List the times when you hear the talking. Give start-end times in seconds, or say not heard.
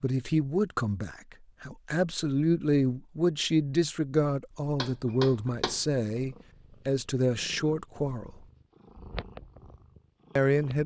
0.0-8.4, 10.3-10.8.